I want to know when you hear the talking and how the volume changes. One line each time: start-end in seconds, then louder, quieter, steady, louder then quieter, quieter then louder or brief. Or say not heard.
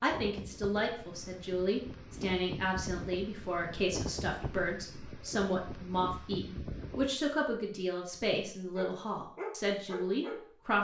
0.0-10.7 steady.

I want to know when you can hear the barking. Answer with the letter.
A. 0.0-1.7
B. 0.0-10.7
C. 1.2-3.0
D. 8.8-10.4
D.